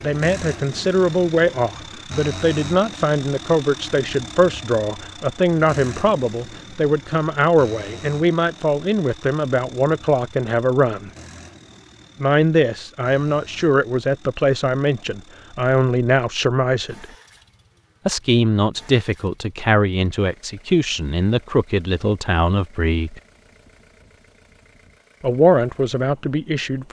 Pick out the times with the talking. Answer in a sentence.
You can hear the talking from 0.0 to 11.1 s, from 12.2 to 17.1 s, from 18.1 to 23.2 s and from 25.2 to 26.8 s.